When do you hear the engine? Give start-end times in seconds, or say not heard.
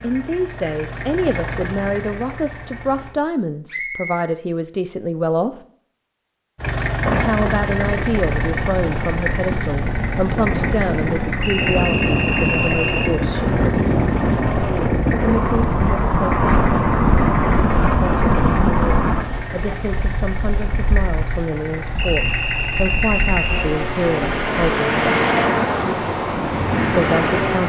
0.0-3.1, 6.5-27.6.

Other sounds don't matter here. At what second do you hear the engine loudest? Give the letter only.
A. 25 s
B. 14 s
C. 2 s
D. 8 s
A.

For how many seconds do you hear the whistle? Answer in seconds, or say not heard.
4 s.